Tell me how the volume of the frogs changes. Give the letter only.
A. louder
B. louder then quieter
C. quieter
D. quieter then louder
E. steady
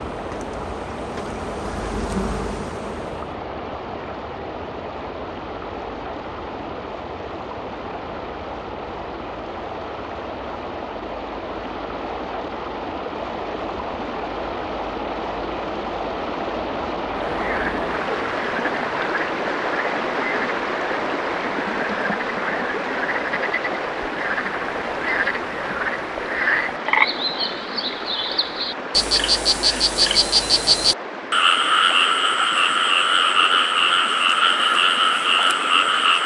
A.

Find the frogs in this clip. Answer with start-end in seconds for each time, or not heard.
17.1-36.2.